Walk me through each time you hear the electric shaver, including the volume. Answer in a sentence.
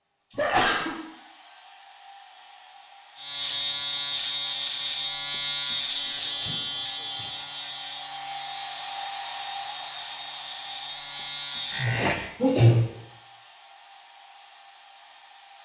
You can hear the electric shaver from 3.1 to 12.3 s, getting quieter then louder.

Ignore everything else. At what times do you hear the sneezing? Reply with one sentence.
The sneezing can be heard from 0.3 to 0.9 s, from 6.3 to 7.3 s and from 11.8 to 12.8 s.